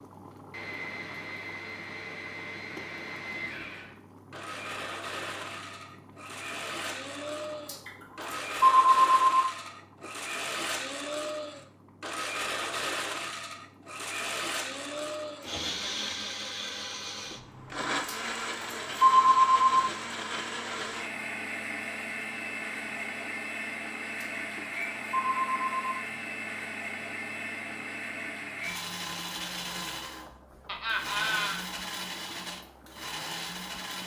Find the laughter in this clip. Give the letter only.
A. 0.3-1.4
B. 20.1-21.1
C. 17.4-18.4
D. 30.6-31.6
D.